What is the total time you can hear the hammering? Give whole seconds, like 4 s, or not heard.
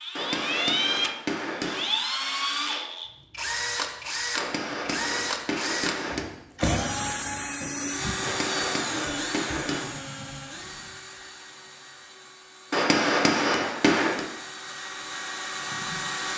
7 s.